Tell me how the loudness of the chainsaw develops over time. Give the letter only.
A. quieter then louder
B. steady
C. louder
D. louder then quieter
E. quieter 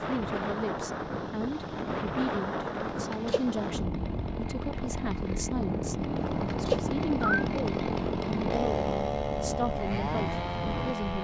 C.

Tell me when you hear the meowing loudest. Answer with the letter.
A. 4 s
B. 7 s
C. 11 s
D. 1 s
B.